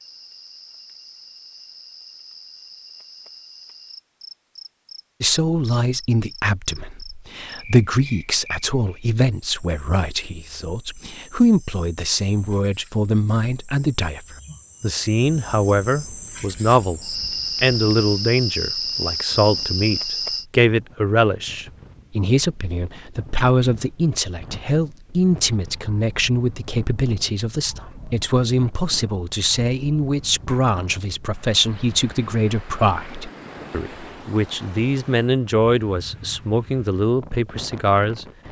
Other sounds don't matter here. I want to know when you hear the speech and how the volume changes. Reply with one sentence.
The speech can be heard from 5.2 to 38.2 s, at a steady volume.